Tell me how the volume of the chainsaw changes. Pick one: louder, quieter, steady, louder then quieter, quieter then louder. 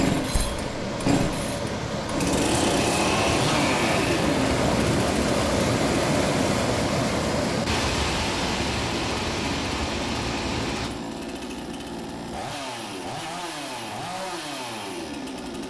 quieter.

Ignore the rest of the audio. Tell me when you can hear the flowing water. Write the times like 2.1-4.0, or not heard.
0.0-10.9.